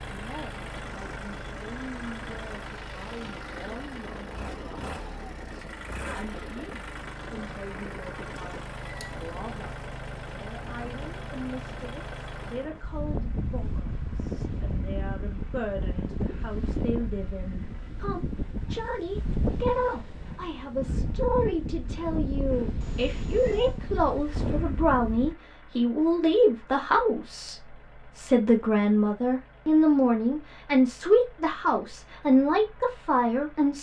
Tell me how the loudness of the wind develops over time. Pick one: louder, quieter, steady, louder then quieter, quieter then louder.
louder.